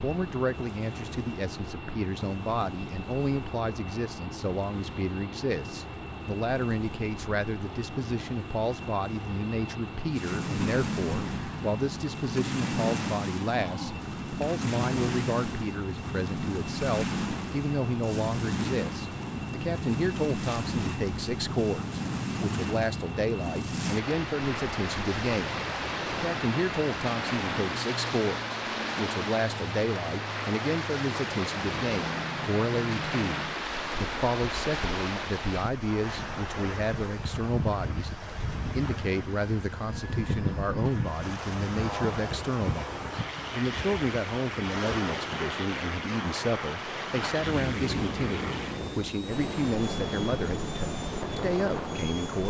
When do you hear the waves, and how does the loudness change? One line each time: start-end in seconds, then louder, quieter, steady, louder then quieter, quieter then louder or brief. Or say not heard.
0.0-52.4 louder.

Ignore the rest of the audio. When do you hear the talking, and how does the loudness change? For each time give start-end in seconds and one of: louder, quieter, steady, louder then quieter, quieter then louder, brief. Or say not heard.
0.0-52.4 steady.